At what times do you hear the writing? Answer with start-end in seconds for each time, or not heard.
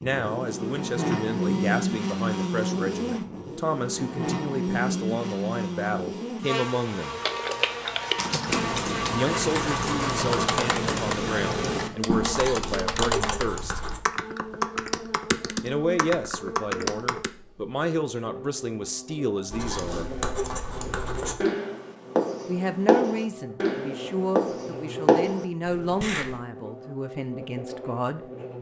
8.4-14.0, 19.5-26.4.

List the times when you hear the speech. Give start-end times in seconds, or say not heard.
0.0-7.2, 9.1-13.8, 15.6-20.1, 22.4-28.3.